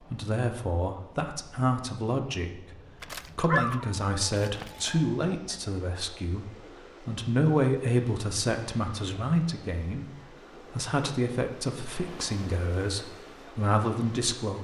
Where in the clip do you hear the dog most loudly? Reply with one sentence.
The loudest moment of the dog is at 4 seconds.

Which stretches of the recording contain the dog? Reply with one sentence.
The dog can be heard from 3.0 to 5.6 s.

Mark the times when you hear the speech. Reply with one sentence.
The speech can be heard from 0.1 to 14.6 s.